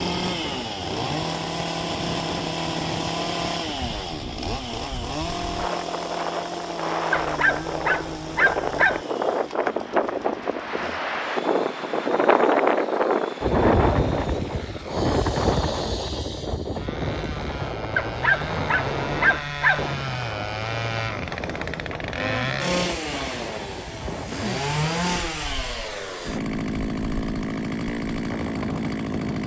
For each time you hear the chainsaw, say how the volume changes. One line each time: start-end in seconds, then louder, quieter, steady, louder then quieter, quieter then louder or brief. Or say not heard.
0.0-29.4 quieter then louder.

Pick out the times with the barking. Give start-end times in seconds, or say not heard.
7.1-9.1, 17.9-19.9.